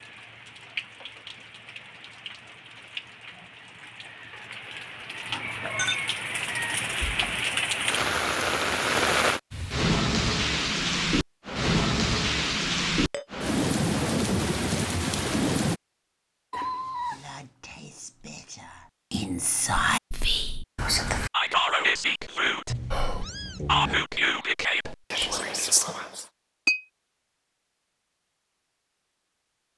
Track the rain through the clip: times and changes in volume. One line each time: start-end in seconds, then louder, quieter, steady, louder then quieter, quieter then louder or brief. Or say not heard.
0.0-15.8 louder.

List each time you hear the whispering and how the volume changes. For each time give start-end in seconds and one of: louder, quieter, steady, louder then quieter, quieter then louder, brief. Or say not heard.
16.8-26.2 louder.